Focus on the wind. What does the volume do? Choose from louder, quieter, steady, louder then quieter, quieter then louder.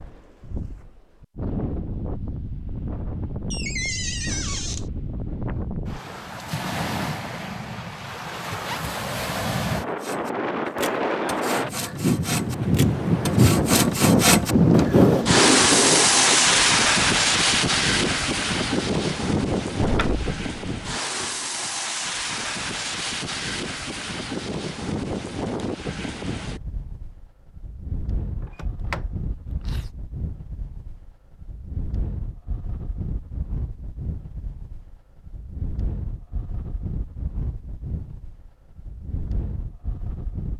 louder then quieter.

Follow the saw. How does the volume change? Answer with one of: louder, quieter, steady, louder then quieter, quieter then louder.
louder.